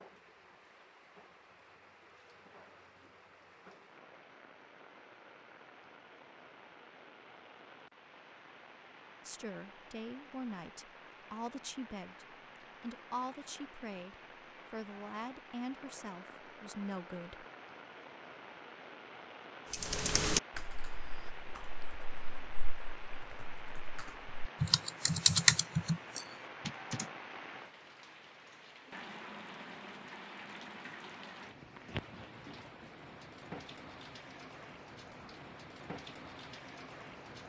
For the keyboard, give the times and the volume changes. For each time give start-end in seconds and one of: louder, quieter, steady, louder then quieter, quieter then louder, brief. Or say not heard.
19.7-27.1 quieter then louder.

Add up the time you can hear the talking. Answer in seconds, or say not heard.
8 s.